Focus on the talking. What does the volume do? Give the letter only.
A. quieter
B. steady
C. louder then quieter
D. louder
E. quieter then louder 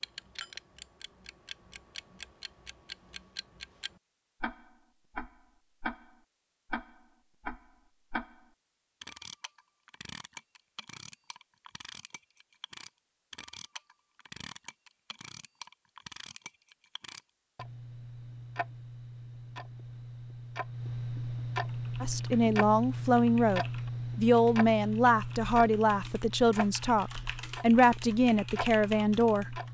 B.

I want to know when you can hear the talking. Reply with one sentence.
The talking can be heard from 22.0 to 29.6 s.